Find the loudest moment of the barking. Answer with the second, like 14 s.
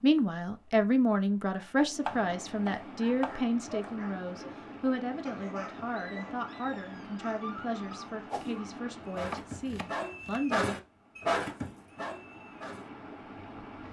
11 s.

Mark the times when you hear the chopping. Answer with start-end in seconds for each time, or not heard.
1.6-3.9, 9.1-10.4.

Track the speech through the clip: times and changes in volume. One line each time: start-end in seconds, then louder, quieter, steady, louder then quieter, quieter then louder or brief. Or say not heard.
0.0-10.8 quieter.